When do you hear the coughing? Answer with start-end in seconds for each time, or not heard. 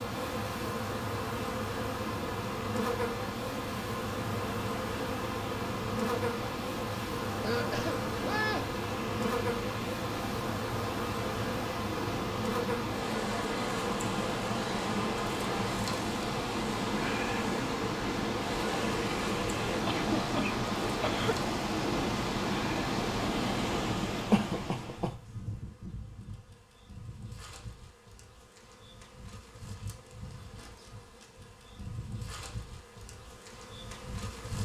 7.4-8.8, 19.9-21.4, 24.3-25.1.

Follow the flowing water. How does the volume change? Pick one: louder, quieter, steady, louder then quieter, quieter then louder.
louder.